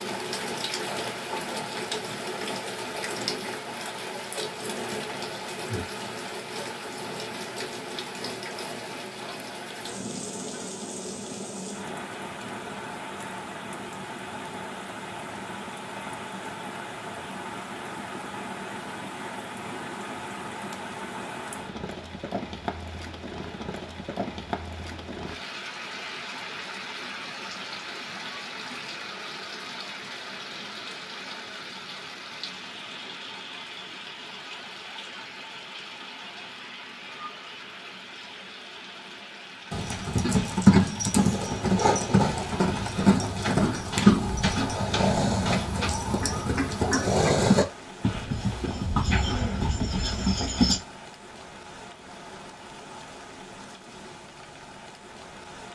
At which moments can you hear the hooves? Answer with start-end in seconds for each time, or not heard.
39.7-50.8.